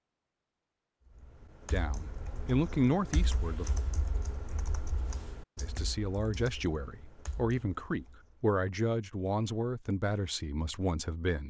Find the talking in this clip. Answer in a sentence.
The talking can be heard from 1.7 to 3.8 s and from 5.6 to 11.4 s.